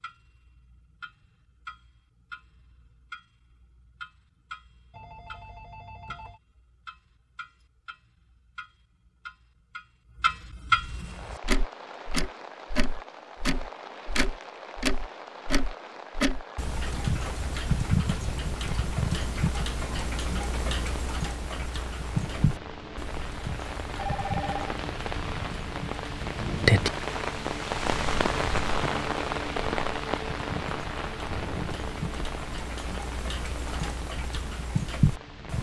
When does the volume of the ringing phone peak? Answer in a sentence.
The loudest moment of the ringing phone is at 24 seconds.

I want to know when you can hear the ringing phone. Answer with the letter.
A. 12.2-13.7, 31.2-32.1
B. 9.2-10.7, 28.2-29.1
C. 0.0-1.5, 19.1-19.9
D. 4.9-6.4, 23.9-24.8
D.